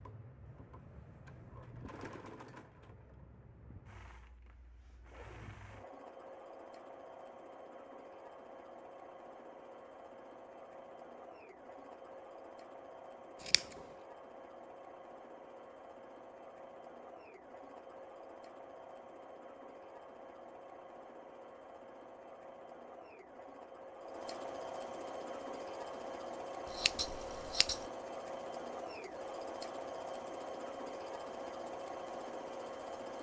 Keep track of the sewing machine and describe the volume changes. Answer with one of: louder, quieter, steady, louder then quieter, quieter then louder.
louder.